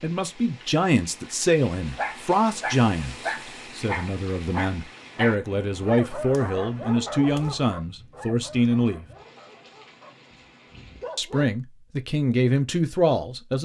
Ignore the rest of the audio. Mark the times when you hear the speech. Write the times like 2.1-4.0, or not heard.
0.0-9.1, 11.2-13.5.